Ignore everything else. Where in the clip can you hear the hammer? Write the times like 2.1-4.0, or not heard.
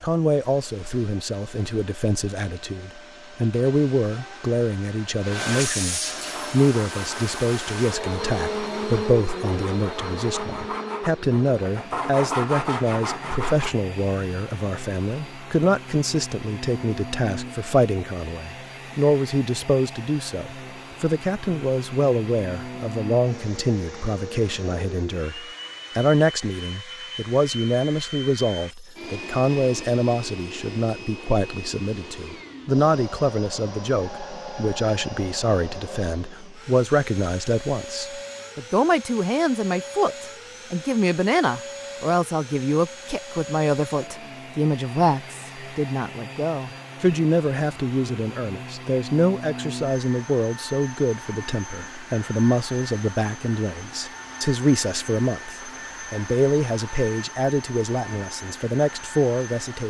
not heard.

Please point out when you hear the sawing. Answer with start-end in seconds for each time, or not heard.
6.2-13.8.